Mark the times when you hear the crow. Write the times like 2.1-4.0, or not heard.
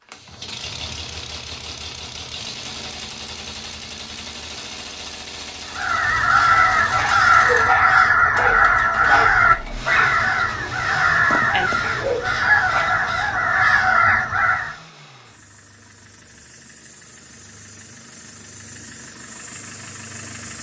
5.7-14.8.